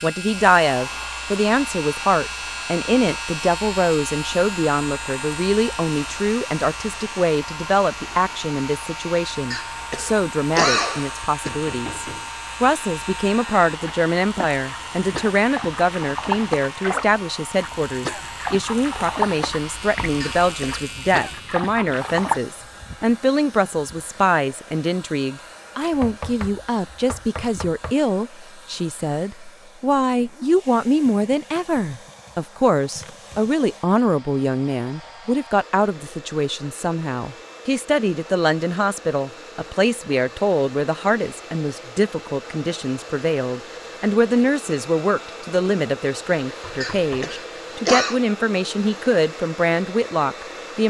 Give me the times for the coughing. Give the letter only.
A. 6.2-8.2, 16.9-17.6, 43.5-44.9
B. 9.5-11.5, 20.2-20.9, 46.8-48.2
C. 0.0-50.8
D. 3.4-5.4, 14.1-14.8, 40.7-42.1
B.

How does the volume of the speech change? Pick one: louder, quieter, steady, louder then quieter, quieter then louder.
steady.